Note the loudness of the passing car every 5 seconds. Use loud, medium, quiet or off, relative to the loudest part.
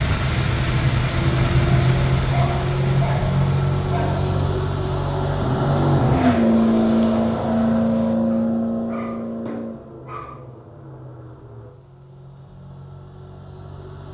loud, loud, quiet.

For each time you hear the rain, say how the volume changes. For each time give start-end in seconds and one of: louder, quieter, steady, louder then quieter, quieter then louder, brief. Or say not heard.
0.0-8.2 quieter.